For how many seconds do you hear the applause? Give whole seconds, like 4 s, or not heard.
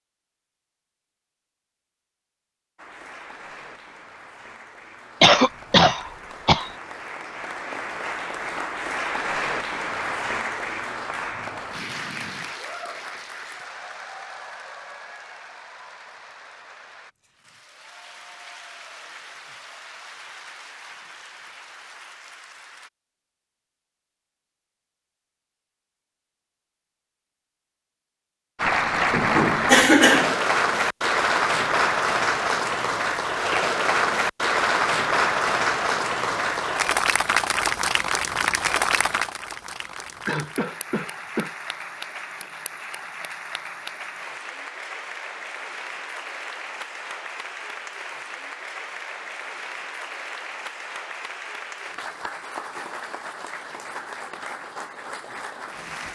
48 s.